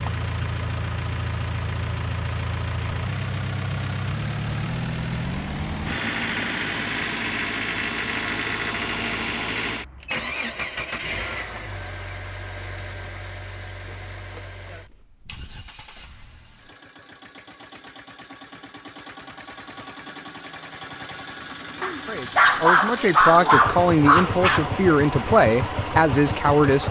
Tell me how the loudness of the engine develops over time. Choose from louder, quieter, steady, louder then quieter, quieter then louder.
quieter then louder.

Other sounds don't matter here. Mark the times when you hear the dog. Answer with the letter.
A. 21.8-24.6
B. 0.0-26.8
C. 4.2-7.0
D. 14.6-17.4
A.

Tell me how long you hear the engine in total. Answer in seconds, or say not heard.
27 s.